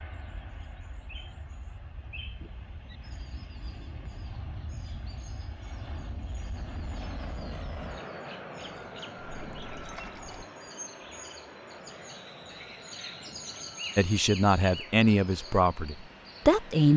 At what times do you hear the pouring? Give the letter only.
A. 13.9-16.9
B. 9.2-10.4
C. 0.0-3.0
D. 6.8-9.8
B.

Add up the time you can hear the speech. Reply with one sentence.
You can hear the speech for 3 seconds altogether.